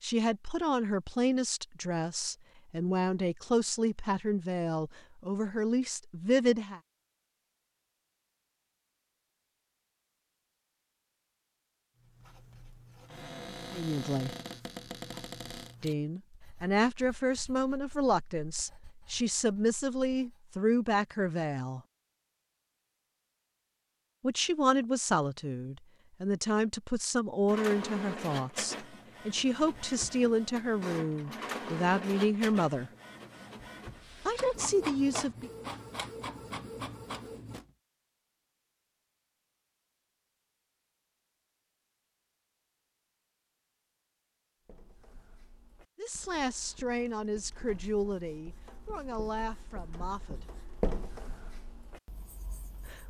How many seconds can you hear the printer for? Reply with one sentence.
You can hear the printer for 10 seconds altogether.